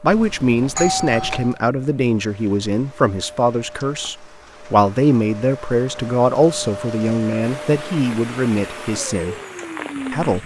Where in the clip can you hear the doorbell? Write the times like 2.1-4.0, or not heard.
0.1-1.6.